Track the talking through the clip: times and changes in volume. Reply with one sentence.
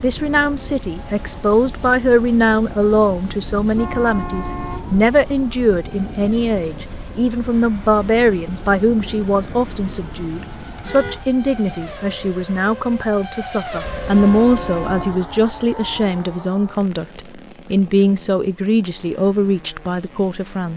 The talking can be heard from 0.0 to 20.7 s, at a steady volume.